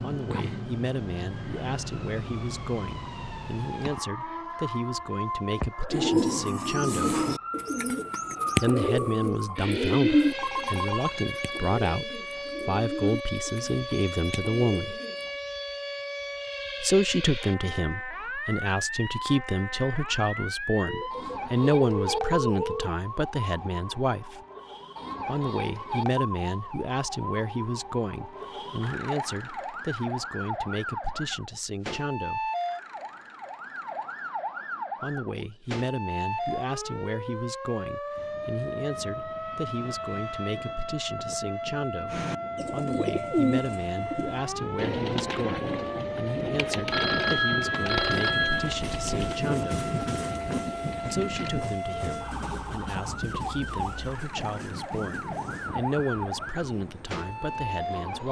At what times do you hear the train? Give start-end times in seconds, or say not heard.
38.1-58.2.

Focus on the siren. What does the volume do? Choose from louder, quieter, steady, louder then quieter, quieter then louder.
steady.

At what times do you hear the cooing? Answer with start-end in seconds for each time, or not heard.
5.9-15.3, 42.1-51.5.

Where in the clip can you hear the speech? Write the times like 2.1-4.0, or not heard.
0.0-7.2, 8.6-14.9, 16.8-24.4, 25.2-32.5, 35.0-49.9, 51.1-58.2.